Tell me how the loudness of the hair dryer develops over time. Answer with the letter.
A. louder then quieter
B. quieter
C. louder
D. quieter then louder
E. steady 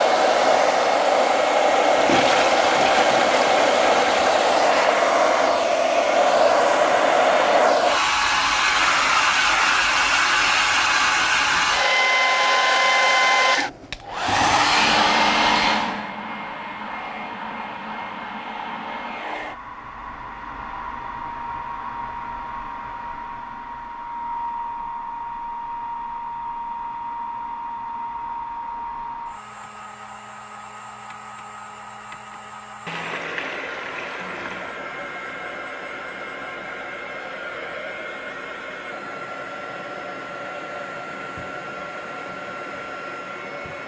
B.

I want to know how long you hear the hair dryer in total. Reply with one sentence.
You can hear the hair dryer for 44 seconds altogether.